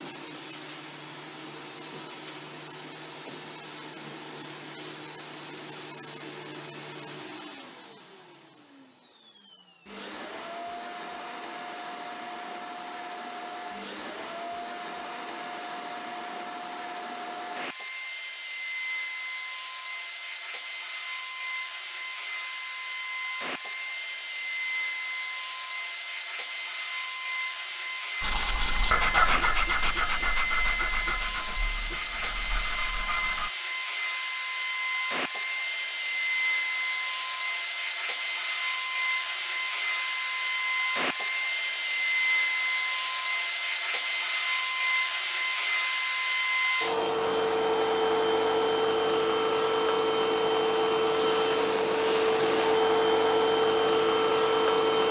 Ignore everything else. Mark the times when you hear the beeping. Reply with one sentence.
You can't hear the beeping here.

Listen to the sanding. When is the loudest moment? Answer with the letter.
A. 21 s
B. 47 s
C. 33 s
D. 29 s
D.